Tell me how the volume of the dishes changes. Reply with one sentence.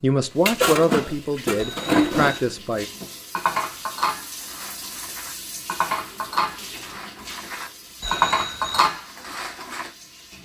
The loudness of the dishes goes down, then up.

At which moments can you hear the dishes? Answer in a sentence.
You can hear the dishes from 0.5 to 9.9 s.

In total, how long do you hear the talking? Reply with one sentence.
The talking can be heard for 3 seconds in total.